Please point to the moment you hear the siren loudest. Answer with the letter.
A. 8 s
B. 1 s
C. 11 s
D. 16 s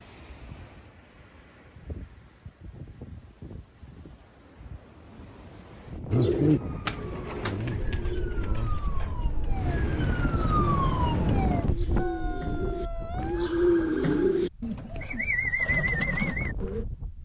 C.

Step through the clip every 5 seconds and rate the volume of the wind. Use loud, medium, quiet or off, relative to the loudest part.
quiet, medium, loud, medium.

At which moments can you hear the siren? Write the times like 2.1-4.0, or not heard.
6.4-14.4.